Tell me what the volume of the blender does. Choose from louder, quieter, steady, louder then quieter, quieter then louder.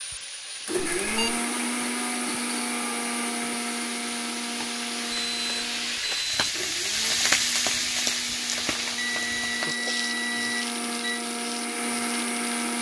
quieter then louder.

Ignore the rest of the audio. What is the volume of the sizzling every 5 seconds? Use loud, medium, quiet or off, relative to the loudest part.
medium, loud, medium.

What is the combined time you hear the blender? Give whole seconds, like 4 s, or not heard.
13 s.